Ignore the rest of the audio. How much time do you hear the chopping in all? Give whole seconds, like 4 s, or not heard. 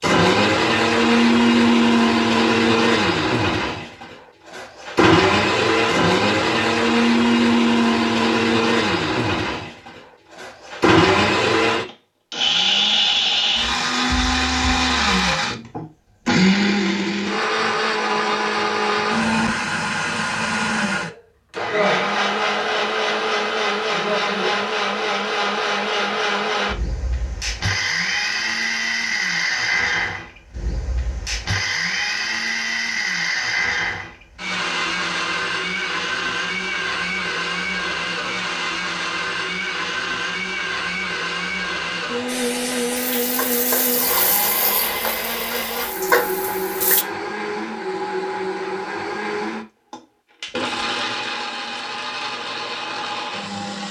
not heard.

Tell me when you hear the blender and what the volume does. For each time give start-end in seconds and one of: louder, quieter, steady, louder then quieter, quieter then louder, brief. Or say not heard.
0.0-53.8 quieter.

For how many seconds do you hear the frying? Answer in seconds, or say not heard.
5 s.